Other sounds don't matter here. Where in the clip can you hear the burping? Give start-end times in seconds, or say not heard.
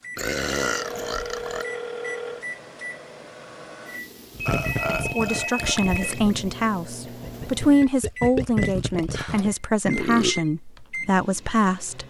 0.1-1.6, 4.5-6.2, 9.8-10.4.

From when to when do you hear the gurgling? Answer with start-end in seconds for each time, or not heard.
4.3-9.6.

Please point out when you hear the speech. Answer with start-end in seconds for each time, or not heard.
4.9-12.0.